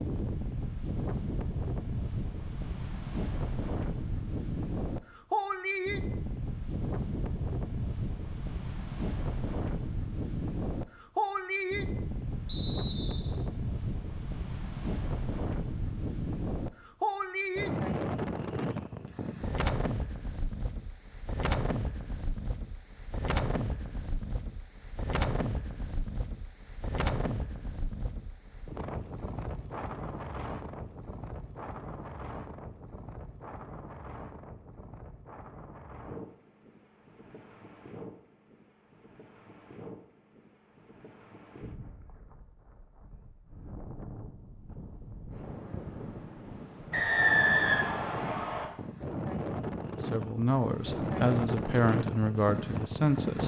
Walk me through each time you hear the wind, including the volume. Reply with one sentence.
You can hear the wind from 0.0 to 53.4 s, getting quieter then louder.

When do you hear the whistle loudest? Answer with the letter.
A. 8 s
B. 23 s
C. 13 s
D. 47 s
D.